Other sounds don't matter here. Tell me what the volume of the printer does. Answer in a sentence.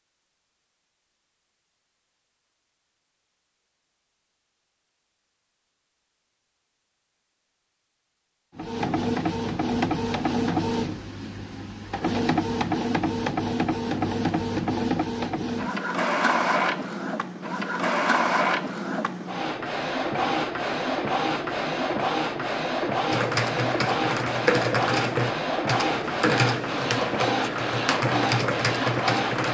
The loudness of the printer stays about the same.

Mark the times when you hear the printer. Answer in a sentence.
You can hear the printer from 8.6 to 29.4 s.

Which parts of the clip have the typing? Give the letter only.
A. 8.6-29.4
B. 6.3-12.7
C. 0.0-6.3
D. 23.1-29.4
D.